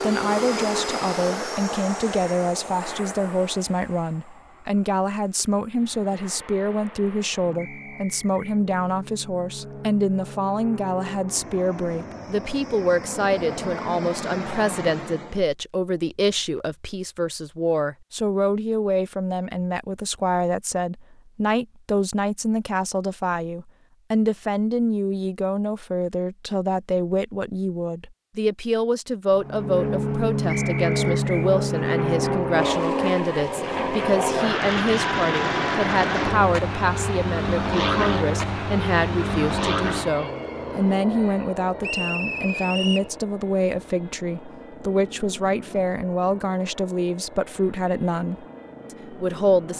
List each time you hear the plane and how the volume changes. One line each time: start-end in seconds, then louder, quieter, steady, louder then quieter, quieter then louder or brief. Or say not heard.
0.0-15.4 quieter then louder
29.4-49.7 quieter.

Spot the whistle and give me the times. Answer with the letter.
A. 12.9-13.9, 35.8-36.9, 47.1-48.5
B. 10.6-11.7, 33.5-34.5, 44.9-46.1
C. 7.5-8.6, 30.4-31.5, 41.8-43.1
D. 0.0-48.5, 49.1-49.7
C.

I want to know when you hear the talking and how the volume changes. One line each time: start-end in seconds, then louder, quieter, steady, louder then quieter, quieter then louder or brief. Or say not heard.
0.0-48.5 steady
49.1-49.7 brief.